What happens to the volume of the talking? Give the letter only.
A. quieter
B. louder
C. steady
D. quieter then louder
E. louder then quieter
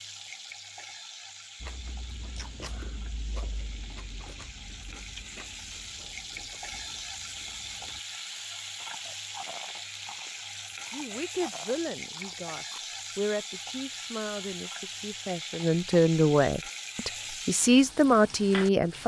B.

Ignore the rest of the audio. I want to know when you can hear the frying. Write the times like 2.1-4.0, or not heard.
0.0-19.0.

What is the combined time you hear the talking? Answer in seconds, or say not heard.
8 s.